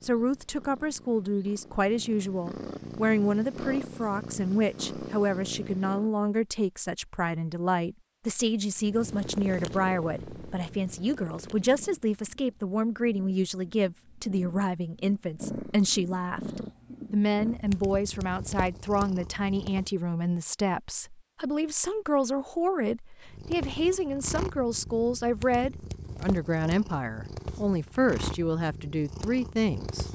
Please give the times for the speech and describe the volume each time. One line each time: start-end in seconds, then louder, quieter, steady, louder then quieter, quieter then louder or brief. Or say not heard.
0.0-30.0 steady.